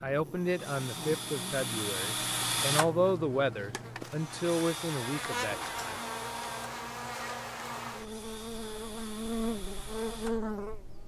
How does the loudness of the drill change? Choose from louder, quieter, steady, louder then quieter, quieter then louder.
quieter.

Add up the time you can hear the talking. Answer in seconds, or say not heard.
6 s.